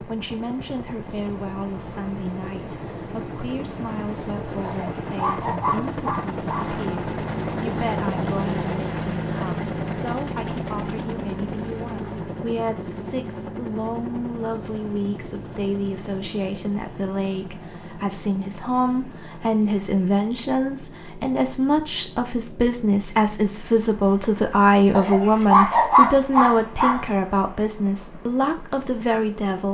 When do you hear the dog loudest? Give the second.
26 s.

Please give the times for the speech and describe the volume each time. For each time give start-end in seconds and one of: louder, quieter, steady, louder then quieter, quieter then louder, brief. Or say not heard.
0.0-29.6 louder.